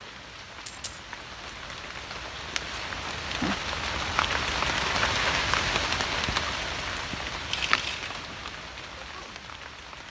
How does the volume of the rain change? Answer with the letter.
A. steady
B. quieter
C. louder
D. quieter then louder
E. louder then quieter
E.